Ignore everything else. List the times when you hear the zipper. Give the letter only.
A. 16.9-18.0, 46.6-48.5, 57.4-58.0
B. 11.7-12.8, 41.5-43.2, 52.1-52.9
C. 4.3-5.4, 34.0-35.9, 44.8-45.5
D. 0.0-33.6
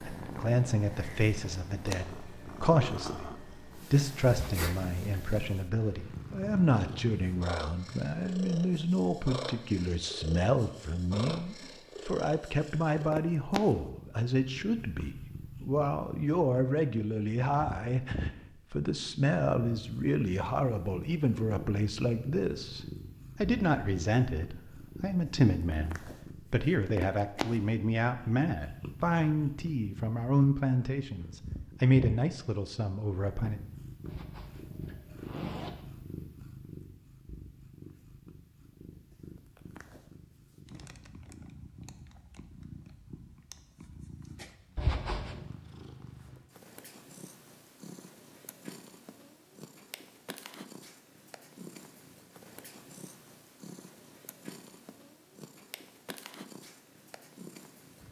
C.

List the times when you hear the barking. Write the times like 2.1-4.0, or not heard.
not heard.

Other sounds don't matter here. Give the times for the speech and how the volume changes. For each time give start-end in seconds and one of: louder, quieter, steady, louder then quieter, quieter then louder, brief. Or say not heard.
0.0-33.6 steady.